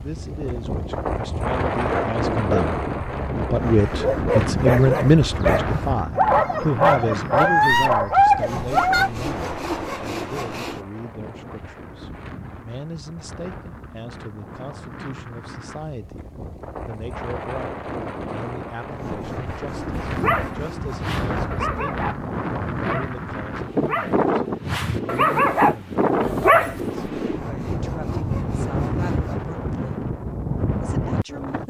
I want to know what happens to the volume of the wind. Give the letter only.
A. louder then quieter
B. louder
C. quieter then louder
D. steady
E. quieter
C.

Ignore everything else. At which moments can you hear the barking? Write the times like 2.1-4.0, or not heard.
1.9-9.1, 20.0-27.0.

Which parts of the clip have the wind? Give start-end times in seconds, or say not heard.
0.0-31.6.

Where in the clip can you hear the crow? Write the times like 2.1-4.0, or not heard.
not heard.